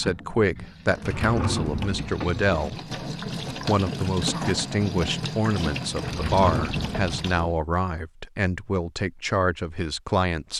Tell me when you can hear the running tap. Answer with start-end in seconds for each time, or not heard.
0.0-7.5.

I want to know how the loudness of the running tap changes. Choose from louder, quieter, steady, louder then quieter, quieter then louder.
louder.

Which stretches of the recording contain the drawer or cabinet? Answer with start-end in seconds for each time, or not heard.
1.0-2.1, 6.0-7.6.